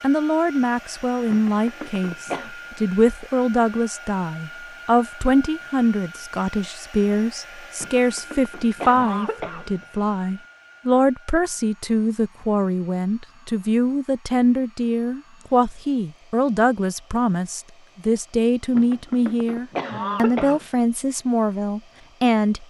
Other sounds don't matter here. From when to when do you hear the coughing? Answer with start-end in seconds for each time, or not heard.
1.3-2.5, 7.8-9.8, 18.8-20.6.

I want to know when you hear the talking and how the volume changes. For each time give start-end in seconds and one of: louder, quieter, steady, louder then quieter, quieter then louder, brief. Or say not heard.
0.0-22.6 steady.